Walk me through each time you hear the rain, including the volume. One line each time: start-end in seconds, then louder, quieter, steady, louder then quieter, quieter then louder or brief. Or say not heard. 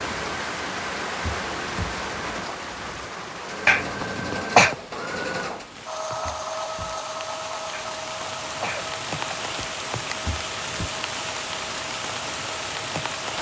0.0-13.3 quieter then louder.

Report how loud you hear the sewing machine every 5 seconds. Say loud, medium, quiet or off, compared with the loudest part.
loud, loud, medium.